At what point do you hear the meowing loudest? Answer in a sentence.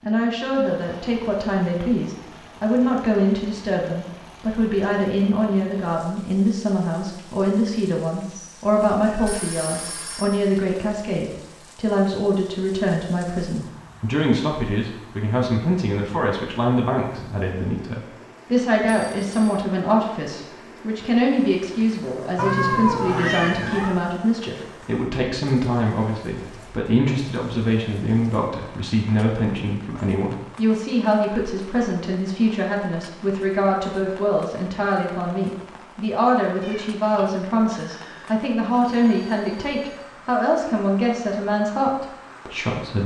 The volume of the meowing peaks at 23 seconds.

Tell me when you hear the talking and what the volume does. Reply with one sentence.
The talking can be heard from 0.0 to 43.0 s, at a steady volume.